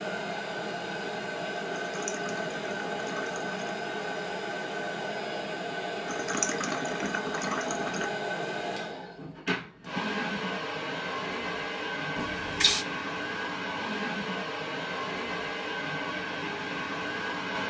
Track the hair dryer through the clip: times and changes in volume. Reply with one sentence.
The hair dryer can be heard from 0.0 to 17.6 s, at a steady volume.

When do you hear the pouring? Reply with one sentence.
You can hear the pouring from 1.8 to 3.8 s, from 6.0 to 8.1 s and from 12.2 to 12.8 s.